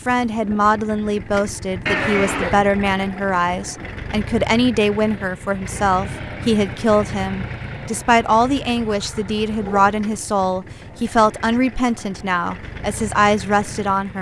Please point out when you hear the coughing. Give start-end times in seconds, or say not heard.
1.9-2.5, 9.6-10.3.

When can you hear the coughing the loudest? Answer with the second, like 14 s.
2 s.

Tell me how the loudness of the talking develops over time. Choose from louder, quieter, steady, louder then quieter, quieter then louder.
steady.